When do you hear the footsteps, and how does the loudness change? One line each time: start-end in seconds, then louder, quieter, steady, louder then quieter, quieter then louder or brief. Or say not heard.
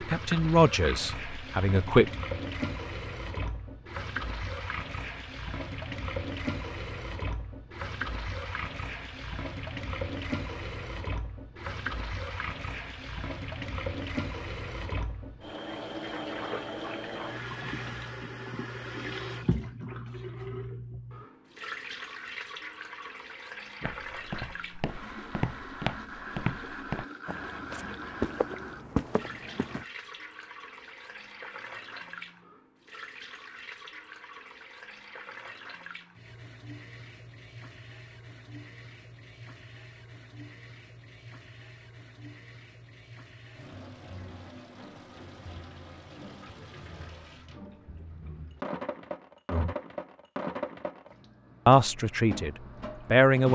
23.8-29.9 louder.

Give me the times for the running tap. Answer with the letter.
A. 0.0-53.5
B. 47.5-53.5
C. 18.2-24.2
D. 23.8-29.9
A.